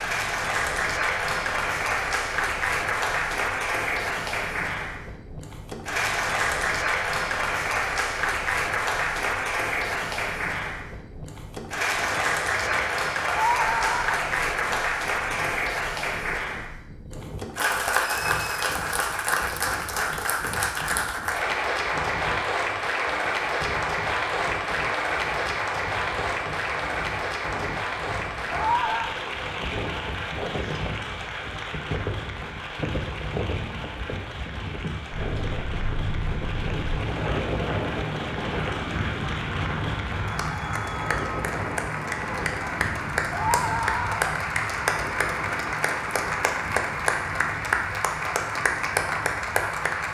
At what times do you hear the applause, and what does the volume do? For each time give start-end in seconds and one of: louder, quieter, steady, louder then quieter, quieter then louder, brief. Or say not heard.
0.0-50.1 quieter then louder.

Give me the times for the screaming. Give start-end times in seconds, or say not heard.
13.2-14.3, 28.5-29.1, 43.3-44.2.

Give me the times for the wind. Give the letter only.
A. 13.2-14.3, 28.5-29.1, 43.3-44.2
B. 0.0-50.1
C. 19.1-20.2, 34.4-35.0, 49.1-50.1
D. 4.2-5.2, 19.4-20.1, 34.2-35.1
B.